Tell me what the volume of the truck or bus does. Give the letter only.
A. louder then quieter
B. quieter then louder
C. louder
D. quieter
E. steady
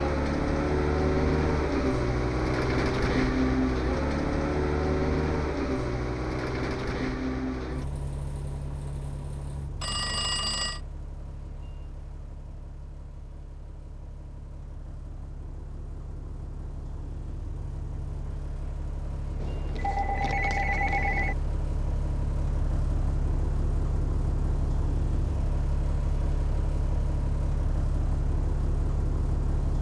B.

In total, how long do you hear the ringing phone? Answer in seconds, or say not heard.
3 s.